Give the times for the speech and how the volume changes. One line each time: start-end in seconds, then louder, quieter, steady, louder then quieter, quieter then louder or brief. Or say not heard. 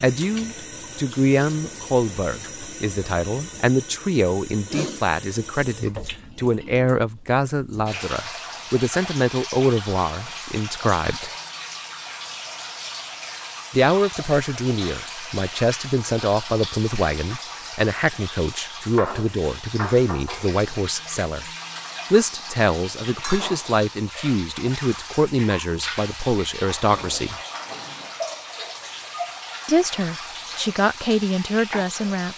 0.0-11.3 steady
13.7-21.4 steady
22.1-27.4 steady
29.6-32.3 brief.